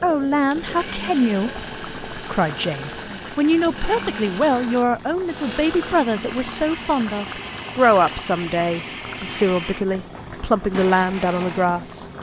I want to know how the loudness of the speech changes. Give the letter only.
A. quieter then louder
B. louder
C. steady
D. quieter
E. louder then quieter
C.